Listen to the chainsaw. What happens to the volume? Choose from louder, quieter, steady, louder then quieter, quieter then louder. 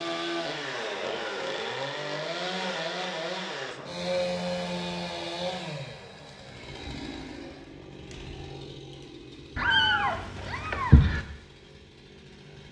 quieter.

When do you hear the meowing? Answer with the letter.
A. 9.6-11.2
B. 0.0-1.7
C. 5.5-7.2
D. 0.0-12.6
A.